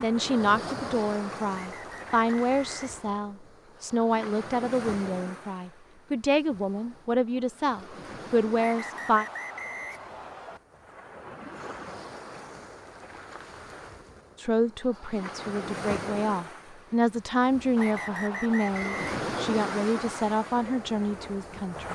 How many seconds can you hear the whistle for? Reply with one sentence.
You can hear the whistle for 5 seconds altogether.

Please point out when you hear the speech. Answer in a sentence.
You can hear the speech from 0.0 to 9.2 s and from 14.3 to 21.9 s.